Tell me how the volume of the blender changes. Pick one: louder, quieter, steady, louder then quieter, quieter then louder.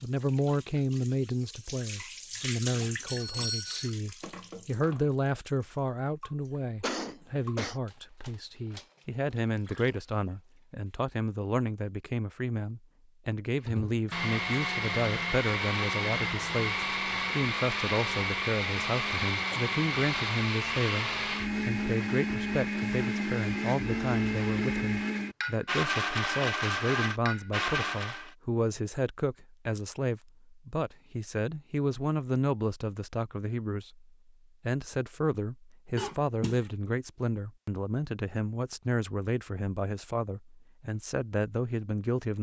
steady.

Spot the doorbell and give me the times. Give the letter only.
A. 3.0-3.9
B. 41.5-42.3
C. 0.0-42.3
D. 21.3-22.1
A.